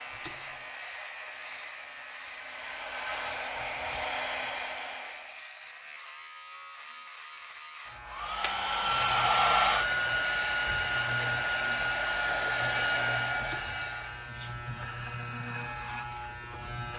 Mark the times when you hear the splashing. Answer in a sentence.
The splashing can be heard from 0.1 to 0.6 s and from 13.3 to 13.8 s.